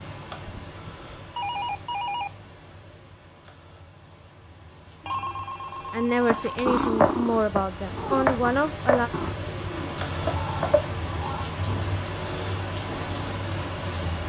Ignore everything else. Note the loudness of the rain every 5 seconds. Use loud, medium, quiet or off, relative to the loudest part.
quiet, medium, loud.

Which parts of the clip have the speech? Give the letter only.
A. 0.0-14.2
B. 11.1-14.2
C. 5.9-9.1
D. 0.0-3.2
C.